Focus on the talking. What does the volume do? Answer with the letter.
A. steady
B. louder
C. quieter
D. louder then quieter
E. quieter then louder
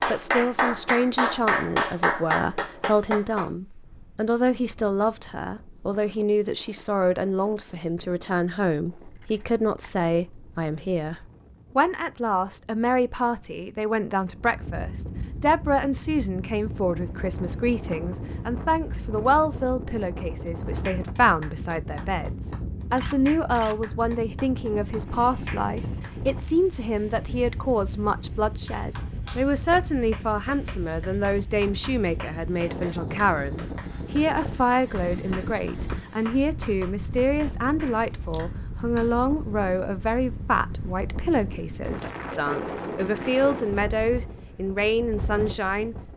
A.